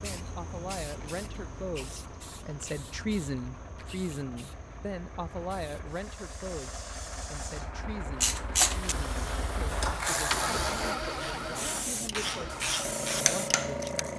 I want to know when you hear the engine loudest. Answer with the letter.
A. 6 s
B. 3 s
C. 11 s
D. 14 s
C.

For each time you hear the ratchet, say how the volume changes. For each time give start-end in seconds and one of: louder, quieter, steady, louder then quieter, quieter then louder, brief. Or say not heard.
8.2-14.1 quieter then louder.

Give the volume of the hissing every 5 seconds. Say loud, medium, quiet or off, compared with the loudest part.
medium, medium, loud.